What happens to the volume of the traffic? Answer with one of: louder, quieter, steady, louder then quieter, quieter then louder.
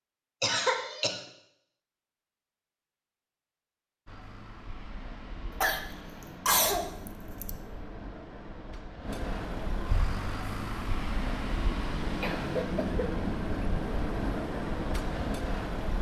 louder.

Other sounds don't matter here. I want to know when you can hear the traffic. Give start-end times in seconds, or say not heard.
4.0-15.9.